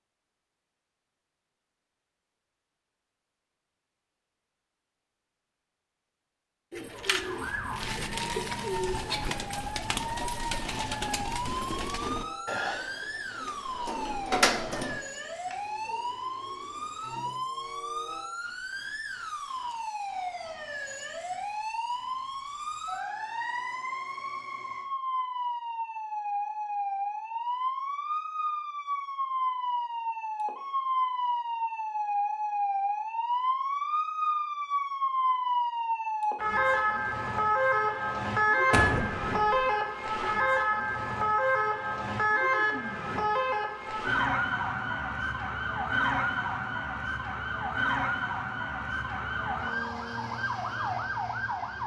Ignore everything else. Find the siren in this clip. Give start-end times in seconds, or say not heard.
6.8-51.8.